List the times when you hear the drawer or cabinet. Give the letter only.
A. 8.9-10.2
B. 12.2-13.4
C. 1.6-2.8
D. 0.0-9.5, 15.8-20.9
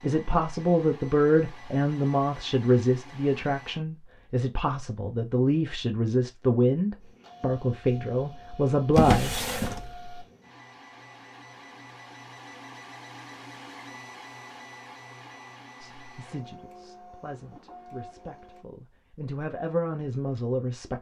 A.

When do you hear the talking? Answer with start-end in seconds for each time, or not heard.
0.0-9.5, 15.8-20.9.